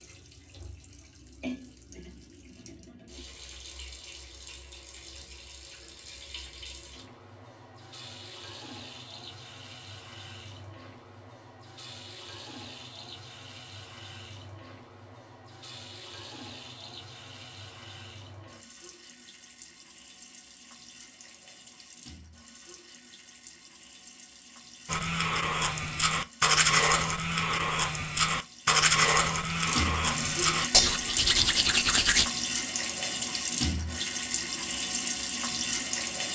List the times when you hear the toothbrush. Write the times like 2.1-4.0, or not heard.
24.9-32.2.